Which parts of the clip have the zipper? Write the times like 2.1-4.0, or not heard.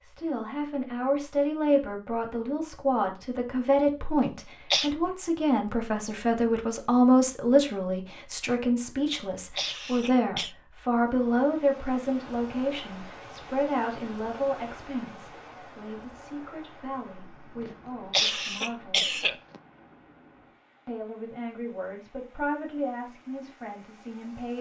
not heard.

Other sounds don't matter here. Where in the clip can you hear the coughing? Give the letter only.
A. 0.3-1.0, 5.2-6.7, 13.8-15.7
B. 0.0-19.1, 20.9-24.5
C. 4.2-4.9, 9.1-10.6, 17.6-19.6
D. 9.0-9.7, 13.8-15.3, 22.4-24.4
C.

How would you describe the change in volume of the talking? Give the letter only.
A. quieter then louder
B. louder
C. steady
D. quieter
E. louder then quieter
D.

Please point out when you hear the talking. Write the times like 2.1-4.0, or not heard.
0.0-19.1, 20.9-24.5.